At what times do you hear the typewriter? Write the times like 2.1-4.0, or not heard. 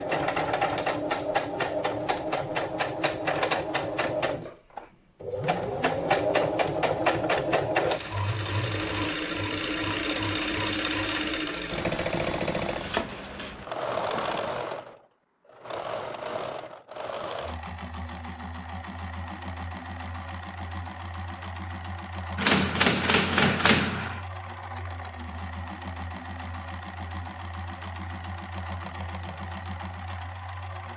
22.4-24.2.